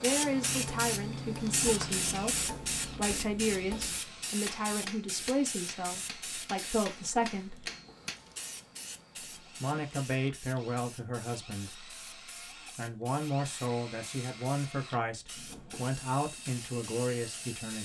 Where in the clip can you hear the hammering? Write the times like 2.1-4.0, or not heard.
0.2-8.2.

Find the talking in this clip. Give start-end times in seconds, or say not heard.
0.0-7.7, 9.6-11.9, 12.8-17.8.